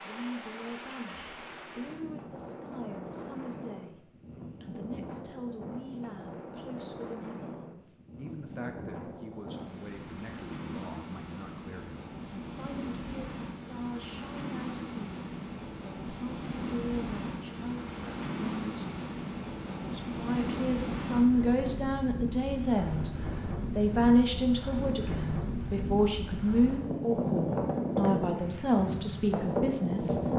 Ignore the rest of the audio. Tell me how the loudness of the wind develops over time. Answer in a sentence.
The volume of the wind goes up.